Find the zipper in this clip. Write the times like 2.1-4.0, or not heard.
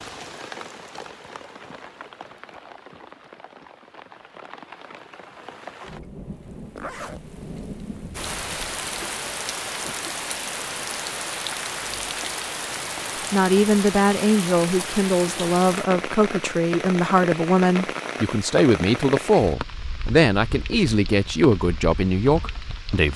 6.8-7.2.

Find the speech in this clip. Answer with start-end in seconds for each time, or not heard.
13.3-23.1.